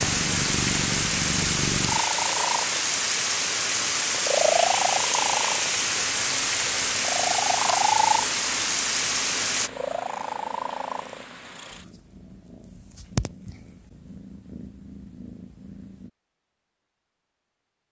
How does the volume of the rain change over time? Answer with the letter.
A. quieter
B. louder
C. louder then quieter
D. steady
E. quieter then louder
D.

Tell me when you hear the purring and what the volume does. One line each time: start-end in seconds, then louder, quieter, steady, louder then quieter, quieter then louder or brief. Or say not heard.
0.0-16.1 quieter.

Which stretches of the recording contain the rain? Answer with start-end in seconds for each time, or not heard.
0.0-9.7.